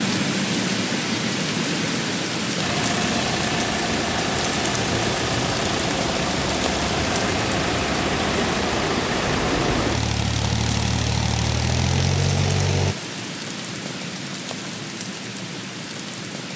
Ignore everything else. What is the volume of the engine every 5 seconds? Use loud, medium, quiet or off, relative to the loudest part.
loud, loud, loud, off.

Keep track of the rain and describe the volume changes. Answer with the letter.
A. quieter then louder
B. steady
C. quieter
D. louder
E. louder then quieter
C.